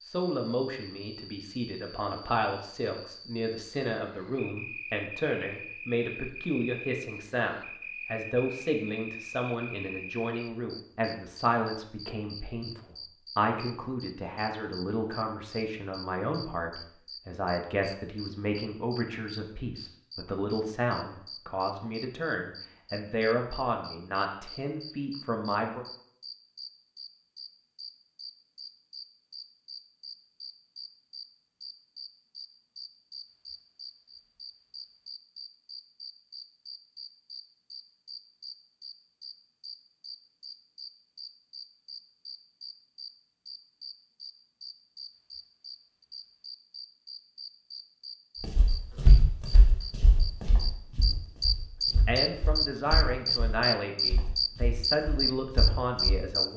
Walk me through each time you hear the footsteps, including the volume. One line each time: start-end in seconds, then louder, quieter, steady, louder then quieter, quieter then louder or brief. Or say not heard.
48.4-56.2 quieter.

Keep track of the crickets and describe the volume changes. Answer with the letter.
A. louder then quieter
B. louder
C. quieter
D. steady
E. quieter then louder
B.